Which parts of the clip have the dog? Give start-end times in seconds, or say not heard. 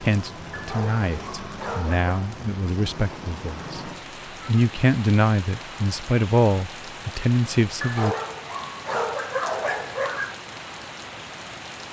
0.5-2.1, 7.8-10.3.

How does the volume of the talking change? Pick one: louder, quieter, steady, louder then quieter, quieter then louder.
louder.